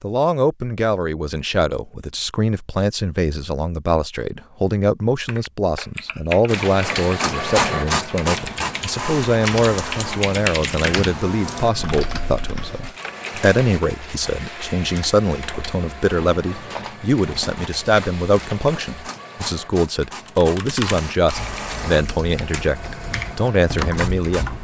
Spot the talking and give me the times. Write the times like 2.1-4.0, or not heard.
0.0-24.5.